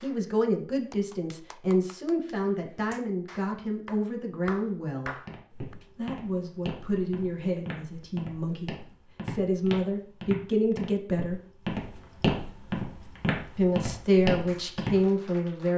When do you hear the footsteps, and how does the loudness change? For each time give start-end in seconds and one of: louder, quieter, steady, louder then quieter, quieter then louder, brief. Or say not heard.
5.2-14.9 louder.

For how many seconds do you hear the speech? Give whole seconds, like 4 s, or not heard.
13 s.